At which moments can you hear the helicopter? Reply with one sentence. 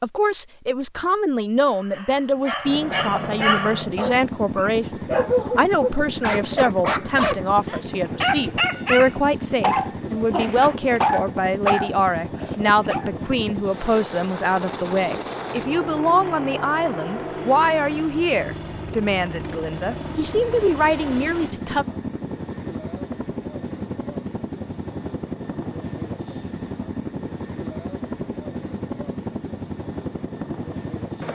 You can hear the helicopter from 2.6 to 31.2 s.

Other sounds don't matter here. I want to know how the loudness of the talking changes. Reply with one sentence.
The volume of the talking stays about the same.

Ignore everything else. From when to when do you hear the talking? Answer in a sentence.
You can hear the talking from 0.0 to 21.9 s.